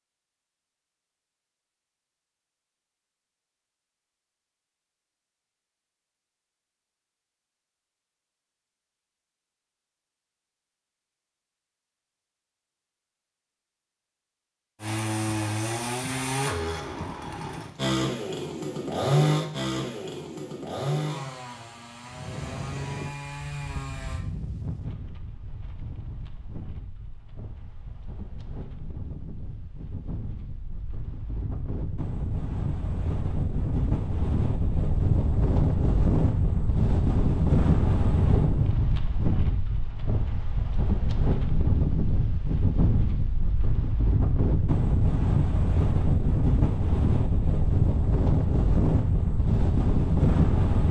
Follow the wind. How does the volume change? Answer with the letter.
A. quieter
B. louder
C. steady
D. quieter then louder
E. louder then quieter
B.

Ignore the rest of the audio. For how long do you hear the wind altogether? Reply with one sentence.
You can hear the wind for 29 seconds altogether.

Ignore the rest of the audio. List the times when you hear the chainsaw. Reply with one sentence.
You can hear the chainsaw from 14.8 to 24.2 s.